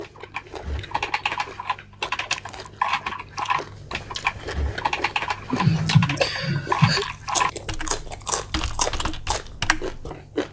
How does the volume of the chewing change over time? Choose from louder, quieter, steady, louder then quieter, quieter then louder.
louder.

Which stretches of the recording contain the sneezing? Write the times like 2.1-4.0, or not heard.
5.5-7.0.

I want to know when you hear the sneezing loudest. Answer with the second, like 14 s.
6 s.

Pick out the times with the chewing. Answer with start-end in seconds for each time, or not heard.
0.0-10.4.